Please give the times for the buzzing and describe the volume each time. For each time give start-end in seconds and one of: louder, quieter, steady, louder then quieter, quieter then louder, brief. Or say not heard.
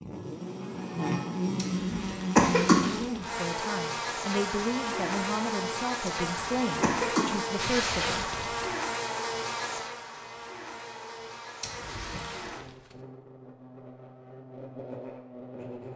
0.0-15.9 quieter.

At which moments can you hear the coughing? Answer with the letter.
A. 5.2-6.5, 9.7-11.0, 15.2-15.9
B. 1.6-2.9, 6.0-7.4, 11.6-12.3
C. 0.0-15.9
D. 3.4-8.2
B.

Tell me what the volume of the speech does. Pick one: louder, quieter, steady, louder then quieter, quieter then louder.
steady.